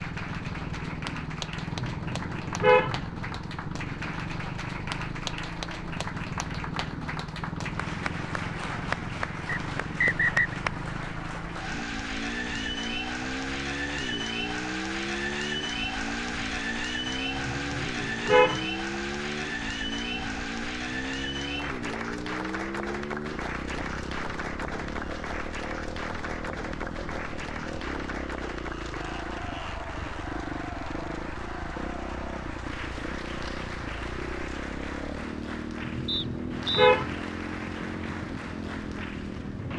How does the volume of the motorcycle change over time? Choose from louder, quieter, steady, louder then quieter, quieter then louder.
steady.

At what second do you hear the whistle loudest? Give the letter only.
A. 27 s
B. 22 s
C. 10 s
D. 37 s
C.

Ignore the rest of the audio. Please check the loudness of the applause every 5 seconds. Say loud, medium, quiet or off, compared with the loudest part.
medium, loud, loud, loud, loud, medium, medium, medium.